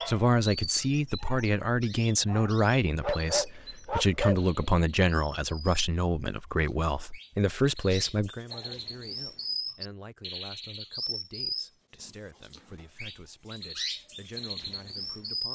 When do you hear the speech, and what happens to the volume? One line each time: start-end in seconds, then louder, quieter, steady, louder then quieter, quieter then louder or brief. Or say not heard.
0.1-15.5 quieter.